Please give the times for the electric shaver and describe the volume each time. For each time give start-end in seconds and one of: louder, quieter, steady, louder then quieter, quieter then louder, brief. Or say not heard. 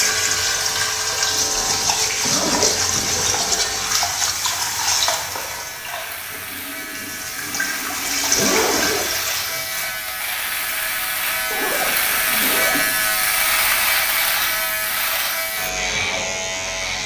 0.0-17.0 louder.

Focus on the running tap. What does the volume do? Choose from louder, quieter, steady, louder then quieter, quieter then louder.
quieter then louder.